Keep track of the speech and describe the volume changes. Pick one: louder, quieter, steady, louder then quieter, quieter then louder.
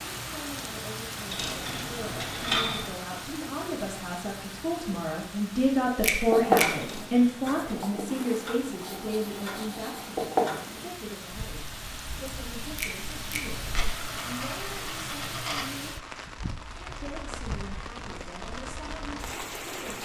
louder then quieter.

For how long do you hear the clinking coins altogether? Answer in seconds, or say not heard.
5 s.